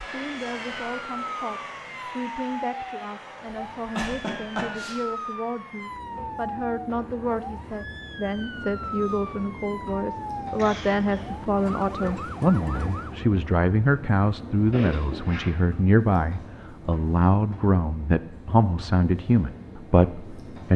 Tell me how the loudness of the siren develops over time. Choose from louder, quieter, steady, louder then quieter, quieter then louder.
steady.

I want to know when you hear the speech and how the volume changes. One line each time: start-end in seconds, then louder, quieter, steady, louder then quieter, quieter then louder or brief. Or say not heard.
0.0-20.7 louder.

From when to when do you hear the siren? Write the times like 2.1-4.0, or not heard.
0.0-13.2.